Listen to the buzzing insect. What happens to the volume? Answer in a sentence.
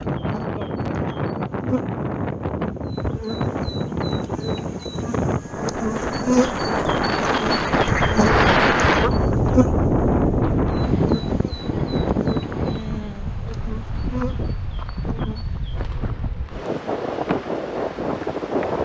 The loudness of the buzzing insect goes up, then down.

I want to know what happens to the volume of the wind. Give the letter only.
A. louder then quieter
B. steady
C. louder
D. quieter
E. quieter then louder
A.